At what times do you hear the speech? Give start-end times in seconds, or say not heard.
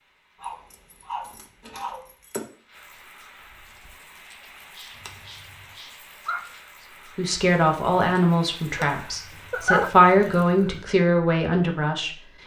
7.2-12.2.